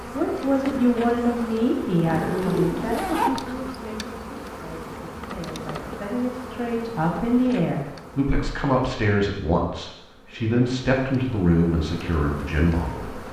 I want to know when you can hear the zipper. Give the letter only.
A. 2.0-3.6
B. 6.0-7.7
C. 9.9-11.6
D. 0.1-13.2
A.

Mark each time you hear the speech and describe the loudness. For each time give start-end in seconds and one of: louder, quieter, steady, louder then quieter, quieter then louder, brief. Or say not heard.
0.1-13.2 quieter then louder.